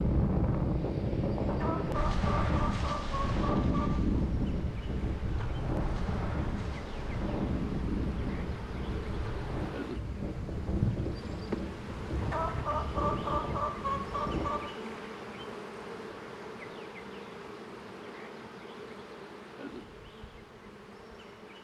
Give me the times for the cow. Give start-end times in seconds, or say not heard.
not heard.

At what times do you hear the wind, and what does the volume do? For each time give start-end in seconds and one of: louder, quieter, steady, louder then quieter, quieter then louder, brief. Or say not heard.
0.0-14.4 quieter.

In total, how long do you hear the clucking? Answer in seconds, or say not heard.
5 s.